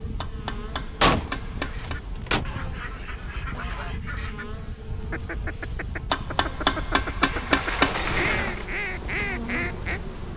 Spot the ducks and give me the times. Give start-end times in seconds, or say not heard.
1.6-10.2.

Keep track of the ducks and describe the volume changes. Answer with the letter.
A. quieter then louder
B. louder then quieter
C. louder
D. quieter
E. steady
C.